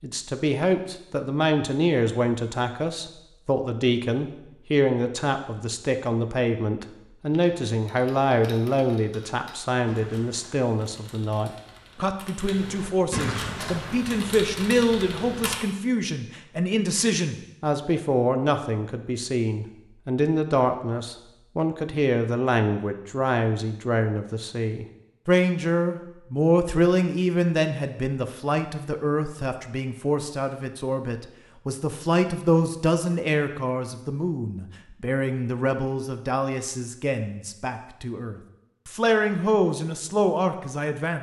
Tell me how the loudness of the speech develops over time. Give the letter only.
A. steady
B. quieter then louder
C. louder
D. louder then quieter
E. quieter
A.